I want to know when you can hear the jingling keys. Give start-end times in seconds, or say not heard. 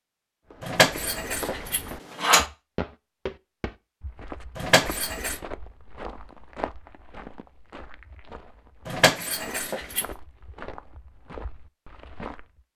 0.6-2.5, 4.5-5.4, 8.8-10.1.